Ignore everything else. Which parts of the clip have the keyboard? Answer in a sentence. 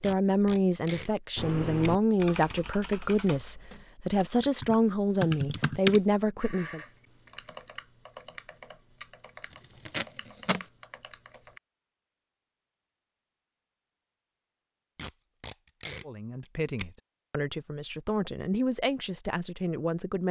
You can hear the keyboard from 1.4 to 11.6 s.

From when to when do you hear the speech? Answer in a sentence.
You can hear the speech from 0.0 to 6.8 s and from 16.1 to 20.2 s.